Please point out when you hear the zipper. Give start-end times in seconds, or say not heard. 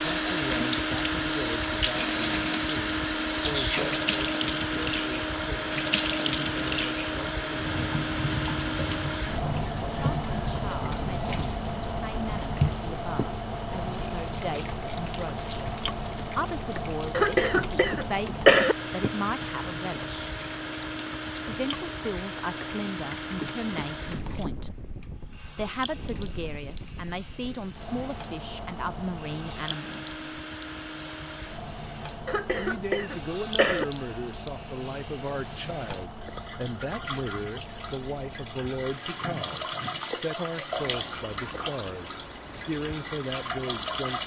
not heard.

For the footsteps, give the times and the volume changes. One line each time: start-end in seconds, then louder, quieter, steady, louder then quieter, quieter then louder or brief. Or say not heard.
not heard.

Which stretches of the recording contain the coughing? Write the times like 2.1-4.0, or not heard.
17.1-18.8, 32.2-33.9.